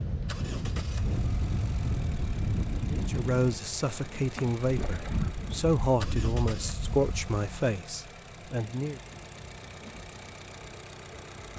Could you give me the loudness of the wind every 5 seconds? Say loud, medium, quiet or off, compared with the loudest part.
loud, loud, off.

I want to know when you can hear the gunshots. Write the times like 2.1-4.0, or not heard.
not heard.